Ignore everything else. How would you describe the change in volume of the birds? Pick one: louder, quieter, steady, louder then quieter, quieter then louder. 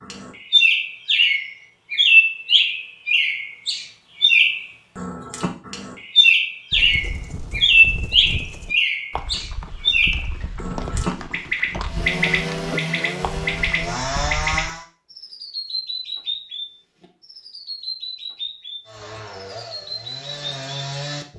quieter.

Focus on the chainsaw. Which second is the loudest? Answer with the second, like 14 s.
14 s.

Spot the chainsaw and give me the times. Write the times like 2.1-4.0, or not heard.
11.8-14.8, 18.9-21.3.